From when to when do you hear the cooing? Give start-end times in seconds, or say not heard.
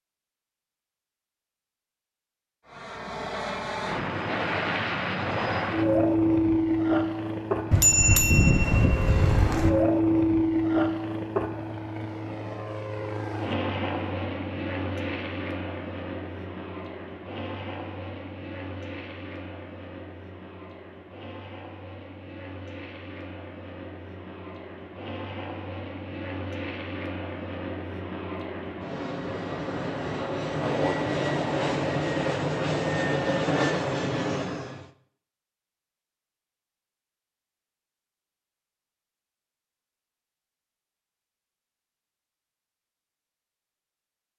not heard.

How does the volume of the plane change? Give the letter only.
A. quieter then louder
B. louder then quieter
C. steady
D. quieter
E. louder
A.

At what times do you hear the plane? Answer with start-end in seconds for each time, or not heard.
2.7-34.9.